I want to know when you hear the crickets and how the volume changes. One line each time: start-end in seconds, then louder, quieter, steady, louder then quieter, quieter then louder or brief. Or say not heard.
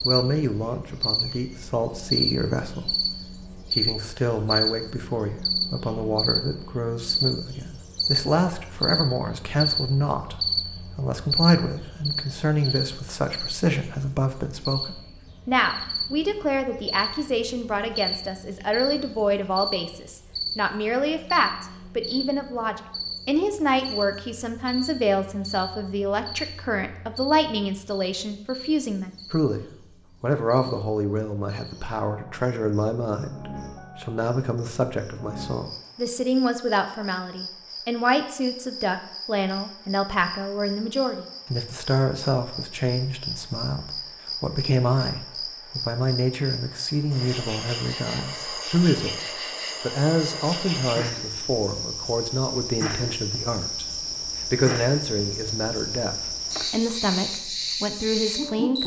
0.0-58.8 quieter then louder.